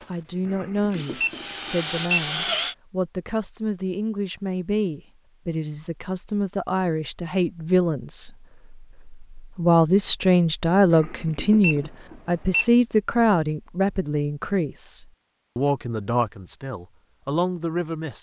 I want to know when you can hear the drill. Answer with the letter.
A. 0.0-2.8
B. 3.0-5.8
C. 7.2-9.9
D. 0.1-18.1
A.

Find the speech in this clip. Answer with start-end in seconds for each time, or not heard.
0.1-18.1.